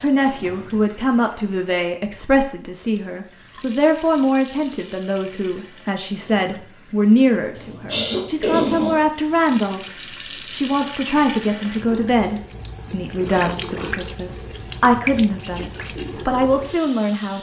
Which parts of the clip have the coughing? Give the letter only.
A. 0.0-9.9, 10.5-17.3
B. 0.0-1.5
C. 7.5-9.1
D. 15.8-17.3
C.